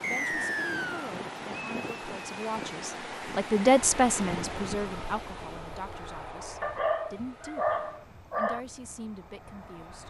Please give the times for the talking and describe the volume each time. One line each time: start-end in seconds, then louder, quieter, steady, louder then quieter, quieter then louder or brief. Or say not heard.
0.0-10.0 louder then quieter.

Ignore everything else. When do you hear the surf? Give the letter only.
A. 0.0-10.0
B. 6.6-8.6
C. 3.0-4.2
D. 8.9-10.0
A.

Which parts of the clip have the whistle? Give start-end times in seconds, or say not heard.
0.0-1.1.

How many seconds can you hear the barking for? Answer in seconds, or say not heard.
2 s.